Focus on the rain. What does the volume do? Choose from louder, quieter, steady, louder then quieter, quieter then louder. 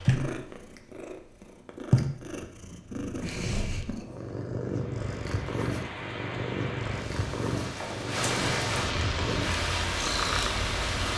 louder.